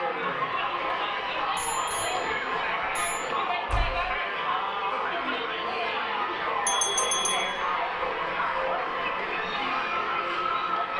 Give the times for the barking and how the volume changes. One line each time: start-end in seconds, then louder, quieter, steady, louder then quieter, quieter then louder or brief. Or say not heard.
not heard.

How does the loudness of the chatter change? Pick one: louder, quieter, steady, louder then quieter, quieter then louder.
steady.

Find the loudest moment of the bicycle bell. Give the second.
7 s.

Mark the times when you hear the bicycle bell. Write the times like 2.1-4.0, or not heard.
1.6-3.2, 6.7-7.5.